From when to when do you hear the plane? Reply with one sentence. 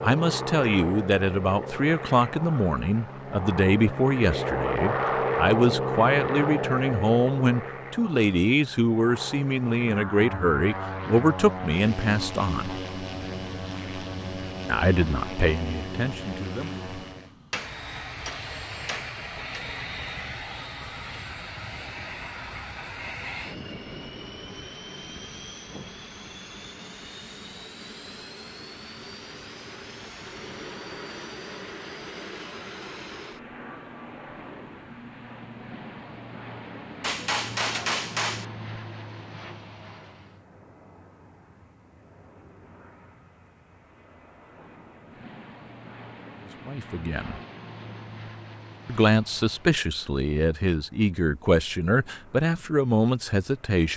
You can hear the plane from 0.0 to 53.9 s.